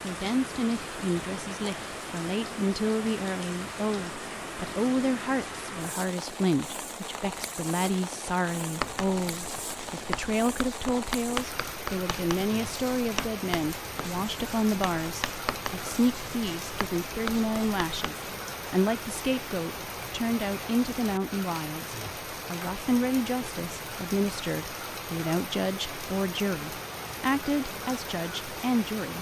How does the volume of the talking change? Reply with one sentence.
The volume of the talking stays about the same.